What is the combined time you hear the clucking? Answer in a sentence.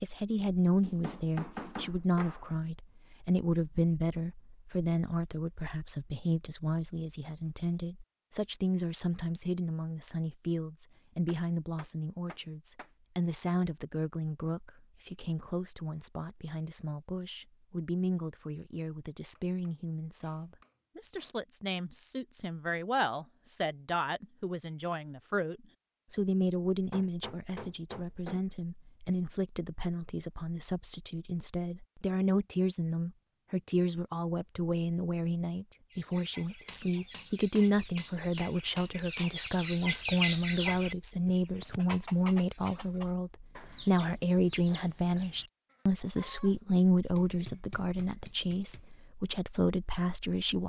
You can hear the clucking for 11 seconds altogether.